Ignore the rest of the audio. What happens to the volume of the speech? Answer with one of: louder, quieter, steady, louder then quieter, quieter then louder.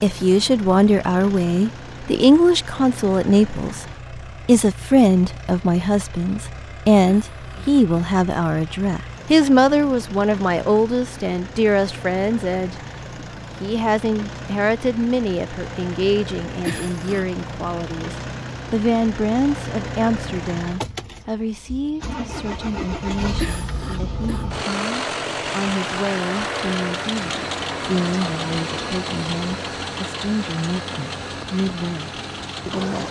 quieter.